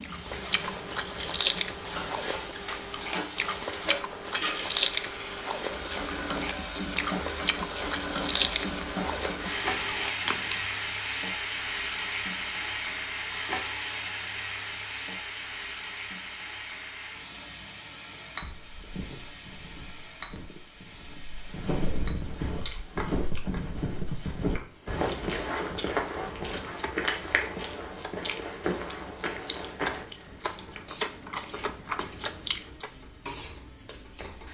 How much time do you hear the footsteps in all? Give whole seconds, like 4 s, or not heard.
12 s.